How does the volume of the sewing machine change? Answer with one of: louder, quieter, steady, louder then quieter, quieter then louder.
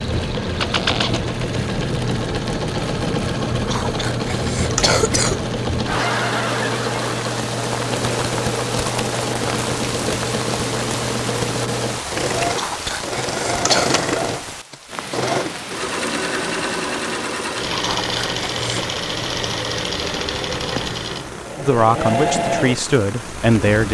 steady.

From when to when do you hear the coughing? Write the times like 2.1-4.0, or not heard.
3.6-5.4, 12.5-13.9, 17.8-18.9.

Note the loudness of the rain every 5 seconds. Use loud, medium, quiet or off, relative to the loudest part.
loud, loud, loud, medium, medium.